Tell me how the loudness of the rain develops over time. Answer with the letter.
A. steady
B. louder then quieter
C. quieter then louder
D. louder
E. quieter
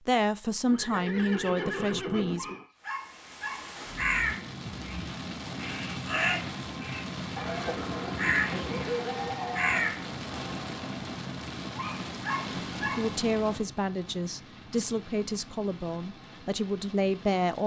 E.